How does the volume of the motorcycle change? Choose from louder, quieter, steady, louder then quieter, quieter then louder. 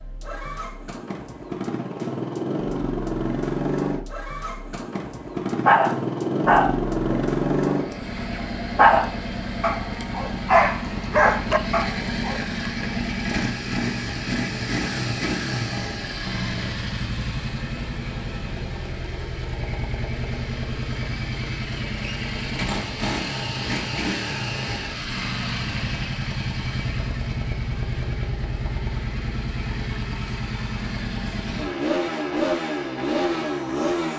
steady.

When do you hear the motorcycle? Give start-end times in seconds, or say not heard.
0.0-34.1.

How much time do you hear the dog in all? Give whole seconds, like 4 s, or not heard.
7 s.